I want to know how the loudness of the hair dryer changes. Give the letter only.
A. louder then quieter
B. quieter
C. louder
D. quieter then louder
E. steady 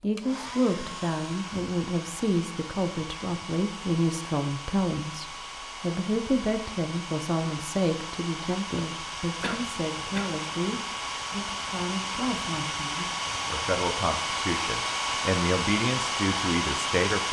C.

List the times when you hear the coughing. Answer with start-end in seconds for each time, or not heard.
9.2-10.3.